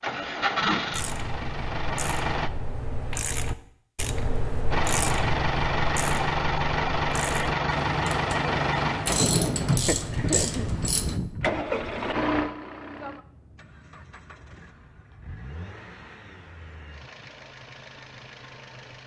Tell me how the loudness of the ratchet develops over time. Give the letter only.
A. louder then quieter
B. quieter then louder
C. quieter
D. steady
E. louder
E.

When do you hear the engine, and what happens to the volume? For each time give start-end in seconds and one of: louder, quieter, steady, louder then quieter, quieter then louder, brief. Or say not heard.
0.0-2.5 brief
4.7-19.0 quieter.